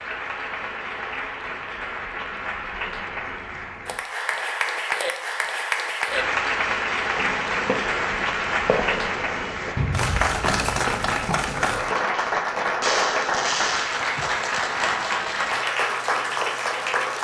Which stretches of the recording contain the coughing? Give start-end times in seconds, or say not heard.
11.2-11.9.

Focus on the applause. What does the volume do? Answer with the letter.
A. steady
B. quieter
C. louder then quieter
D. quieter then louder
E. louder
E.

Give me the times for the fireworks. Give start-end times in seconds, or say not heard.
7.2-14.0.